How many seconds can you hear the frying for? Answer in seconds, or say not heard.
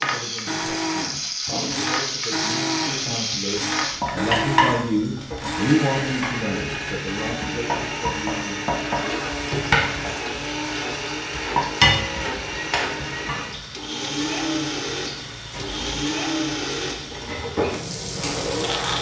19 s.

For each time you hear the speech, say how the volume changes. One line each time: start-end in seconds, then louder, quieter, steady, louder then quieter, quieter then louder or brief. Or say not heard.
0.0-8.6 louder then quieter.